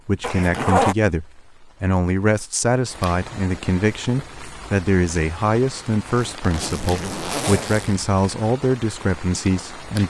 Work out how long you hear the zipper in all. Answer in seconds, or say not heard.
3 s.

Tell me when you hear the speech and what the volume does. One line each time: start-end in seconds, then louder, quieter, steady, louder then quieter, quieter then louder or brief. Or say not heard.
0.1-10.0 steady.